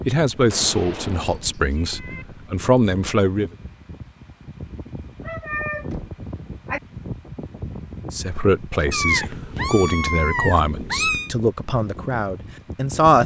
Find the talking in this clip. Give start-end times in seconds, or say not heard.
0.1-3.5, 8.1-13.2.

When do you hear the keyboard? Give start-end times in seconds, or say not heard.
not heard.